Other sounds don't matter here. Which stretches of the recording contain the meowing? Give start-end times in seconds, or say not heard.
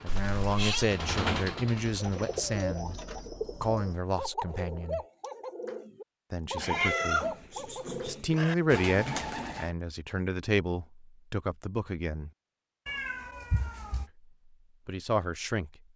0.1-0.9, 6.5-8.6, 12.8-14.1.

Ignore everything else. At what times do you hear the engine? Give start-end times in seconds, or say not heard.
0.0-2.9.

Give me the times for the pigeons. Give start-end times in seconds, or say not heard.
1.9-9.8.